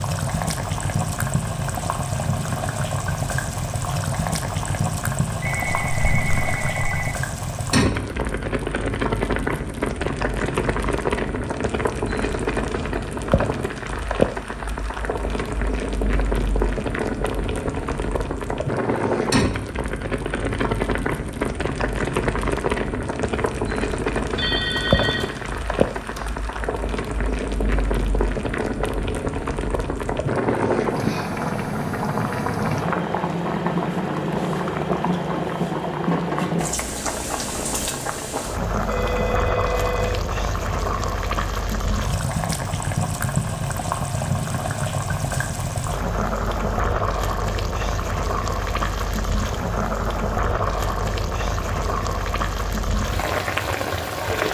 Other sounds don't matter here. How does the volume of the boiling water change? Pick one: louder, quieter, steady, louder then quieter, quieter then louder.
steady.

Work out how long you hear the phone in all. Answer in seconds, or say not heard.
5 s.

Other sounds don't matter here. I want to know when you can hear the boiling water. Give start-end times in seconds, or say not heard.
0.0-54.4.